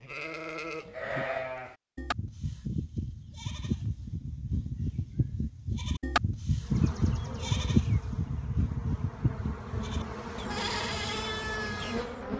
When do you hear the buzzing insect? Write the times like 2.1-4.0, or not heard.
6.6-12.3.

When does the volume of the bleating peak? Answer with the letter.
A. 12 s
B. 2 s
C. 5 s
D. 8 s
D.